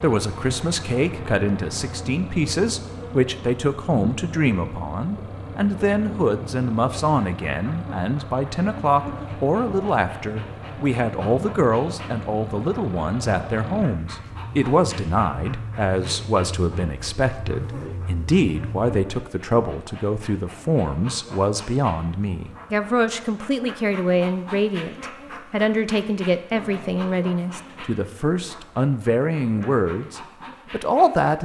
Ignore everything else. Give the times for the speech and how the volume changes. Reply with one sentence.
You can hear the speech from 0.0 to 31.3 s, at a steady volume.